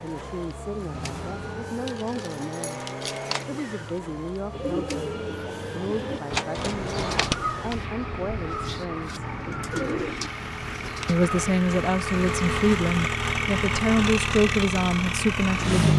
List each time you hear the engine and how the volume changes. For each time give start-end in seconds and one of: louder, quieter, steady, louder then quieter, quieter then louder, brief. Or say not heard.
0.0-15.9 louder.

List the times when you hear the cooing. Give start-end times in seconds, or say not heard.
4.5-11.3.